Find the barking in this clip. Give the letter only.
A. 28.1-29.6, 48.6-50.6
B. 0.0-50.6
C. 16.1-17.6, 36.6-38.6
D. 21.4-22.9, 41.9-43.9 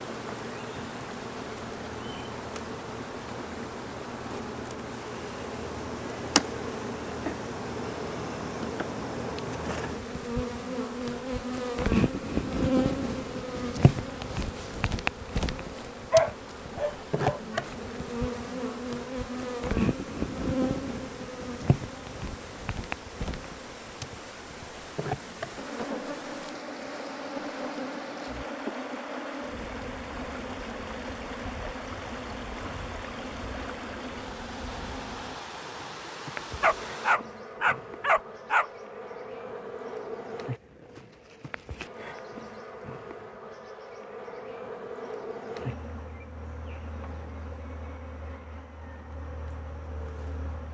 C.